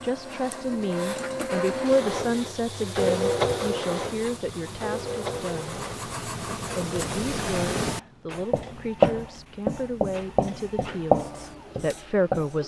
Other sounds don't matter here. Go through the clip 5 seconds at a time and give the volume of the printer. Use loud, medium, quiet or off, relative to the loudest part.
loud, medium, quiet.